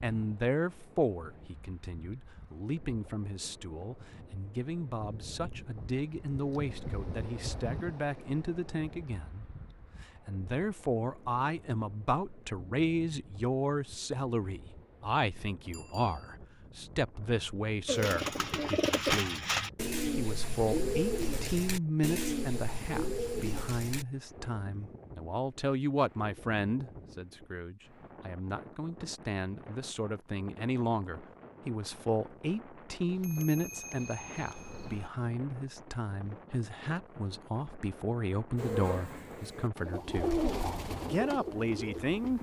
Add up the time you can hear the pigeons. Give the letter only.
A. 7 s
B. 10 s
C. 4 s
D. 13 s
B.